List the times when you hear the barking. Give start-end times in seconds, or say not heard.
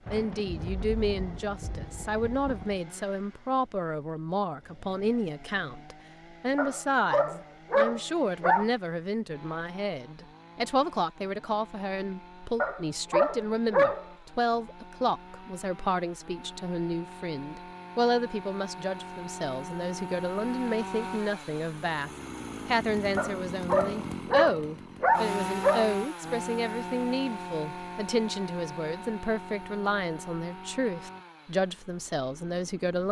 6.5-8.7, 12.6-14.1, 23.1-25.9.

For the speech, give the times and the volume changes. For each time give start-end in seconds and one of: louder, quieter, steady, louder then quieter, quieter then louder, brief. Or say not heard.
0.1-33.0 steady.